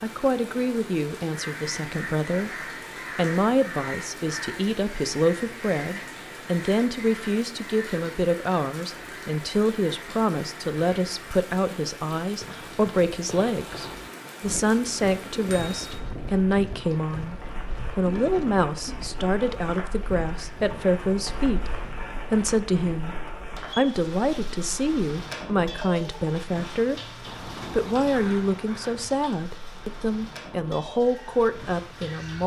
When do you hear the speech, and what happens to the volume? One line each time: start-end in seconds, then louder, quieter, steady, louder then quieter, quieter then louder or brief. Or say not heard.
0.0-17.4 steady
17.9-32.4 steady.